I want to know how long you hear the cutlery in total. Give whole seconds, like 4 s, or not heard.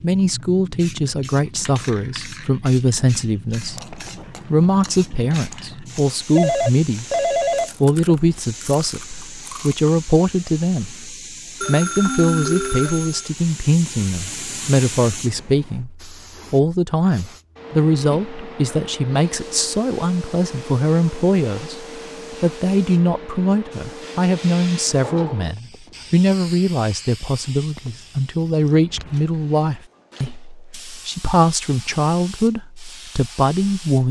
not heard.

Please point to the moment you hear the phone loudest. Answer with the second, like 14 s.
7 s.